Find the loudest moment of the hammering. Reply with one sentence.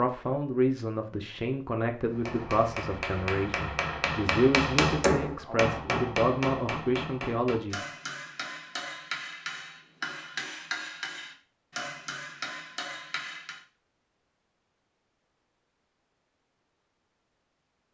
The loudest moment of the hammering is at 5 seconds.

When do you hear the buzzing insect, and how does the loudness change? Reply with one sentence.
The buzzing insect can't be heard in this clip.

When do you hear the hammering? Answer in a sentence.
The hammering can be heard from 2.0 to 13.6 s.